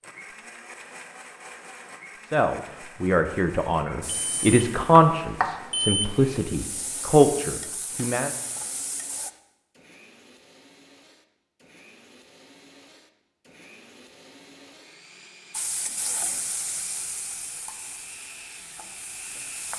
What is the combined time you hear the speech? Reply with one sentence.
The speech can be heard for 6 seconds in total.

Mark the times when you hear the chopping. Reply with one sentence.
You can't hear the chopping here.